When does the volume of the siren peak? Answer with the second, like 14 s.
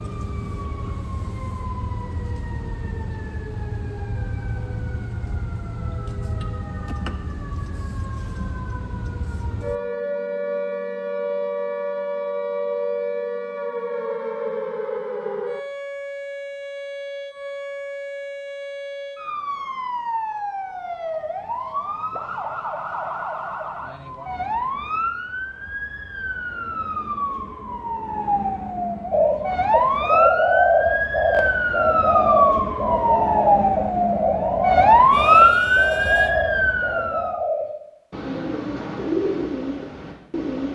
35 s.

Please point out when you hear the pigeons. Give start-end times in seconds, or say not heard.
29.1-40.6.